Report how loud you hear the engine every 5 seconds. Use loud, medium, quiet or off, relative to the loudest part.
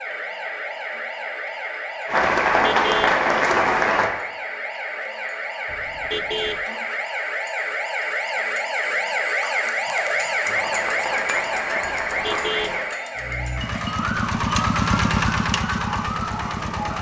off, off, loud, loud.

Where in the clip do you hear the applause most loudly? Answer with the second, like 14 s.
3 s.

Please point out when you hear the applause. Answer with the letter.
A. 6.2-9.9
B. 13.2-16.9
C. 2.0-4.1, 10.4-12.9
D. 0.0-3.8
C.